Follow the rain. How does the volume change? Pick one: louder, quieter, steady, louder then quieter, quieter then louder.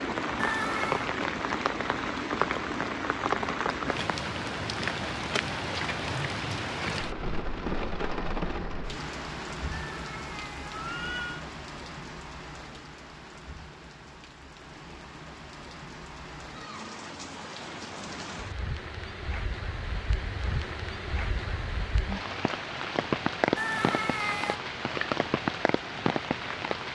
quieter then louder.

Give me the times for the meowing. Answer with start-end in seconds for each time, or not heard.
0.3-1.1, 9.7-11.4, 23.6-24.6.